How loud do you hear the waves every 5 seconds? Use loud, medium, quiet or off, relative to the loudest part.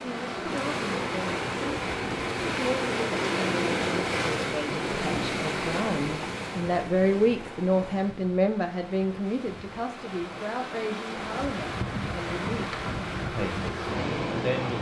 loud, medium, loud.